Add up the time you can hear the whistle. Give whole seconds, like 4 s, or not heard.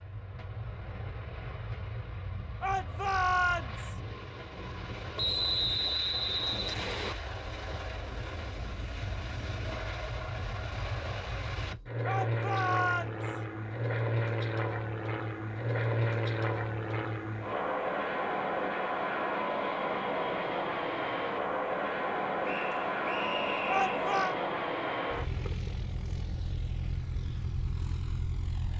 4 s.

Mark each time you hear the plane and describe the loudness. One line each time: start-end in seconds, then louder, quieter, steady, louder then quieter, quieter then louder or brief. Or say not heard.
0.0-28.7 louder.